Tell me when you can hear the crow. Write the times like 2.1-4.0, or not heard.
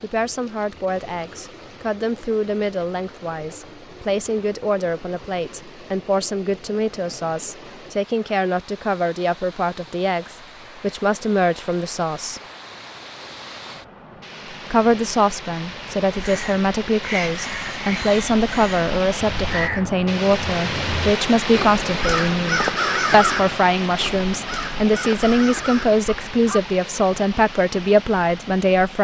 16.1-26.6.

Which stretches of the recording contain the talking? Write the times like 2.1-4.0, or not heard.
0.0-12.4, 14.7-29.0.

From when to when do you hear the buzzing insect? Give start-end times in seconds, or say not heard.
not heard.